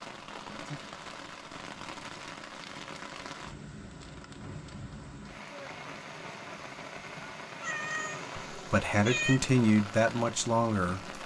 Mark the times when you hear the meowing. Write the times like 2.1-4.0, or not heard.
7.6-9.4.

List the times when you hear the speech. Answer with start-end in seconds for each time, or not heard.
8.5-11.0.